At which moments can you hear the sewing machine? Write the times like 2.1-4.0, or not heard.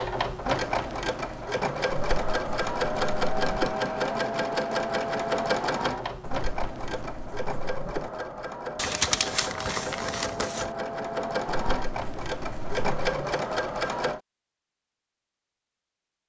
0.0-14.2.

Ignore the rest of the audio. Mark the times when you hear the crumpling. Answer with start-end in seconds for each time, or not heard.
8.8-10.8.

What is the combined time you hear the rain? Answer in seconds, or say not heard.
not heard.